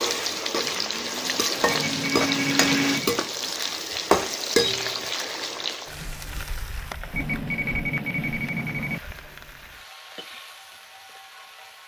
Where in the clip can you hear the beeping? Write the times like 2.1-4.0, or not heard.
1.6-3.2, 7.1-9.0.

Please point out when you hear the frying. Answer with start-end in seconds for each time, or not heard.
0.0-11.8.